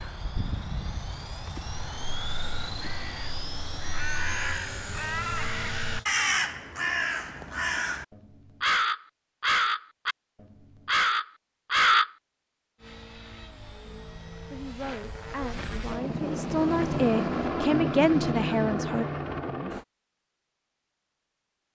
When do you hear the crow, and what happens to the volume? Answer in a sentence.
You can hear the crow from 1.7 to 12.1 s, getting louder.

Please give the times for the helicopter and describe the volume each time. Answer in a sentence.
You can hear the helicopter from 0.0 to 6.0 s, at a steady volume; and from 12.8 to 19.9 s, getting louder.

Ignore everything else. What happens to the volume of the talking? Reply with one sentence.
The volume of the talking goes up.